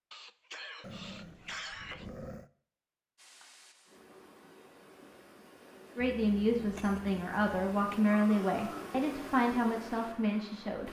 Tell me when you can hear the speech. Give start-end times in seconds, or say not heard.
6.0-10.8.